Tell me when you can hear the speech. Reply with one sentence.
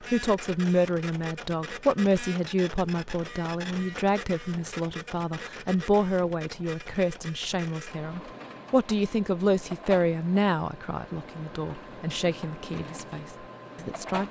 You can hear the speech from 0.1 to 14.2 s.